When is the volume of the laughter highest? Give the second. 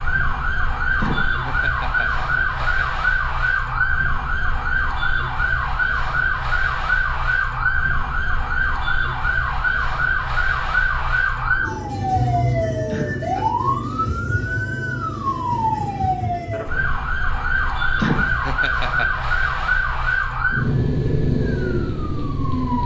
18 s.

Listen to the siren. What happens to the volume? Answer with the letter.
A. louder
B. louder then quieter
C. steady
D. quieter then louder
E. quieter
C.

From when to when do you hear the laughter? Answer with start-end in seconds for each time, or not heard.
0.9-2.9, 12.8-13.5, 17.9-19.2.